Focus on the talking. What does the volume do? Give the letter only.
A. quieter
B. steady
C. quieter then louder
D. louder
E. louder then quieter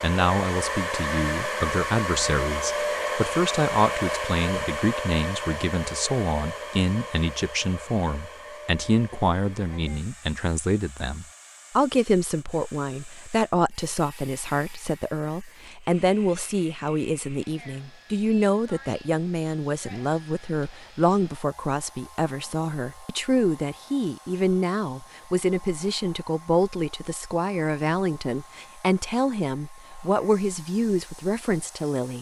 B.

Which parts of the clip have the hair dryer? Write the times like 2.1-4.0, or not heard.
0.0-32.1.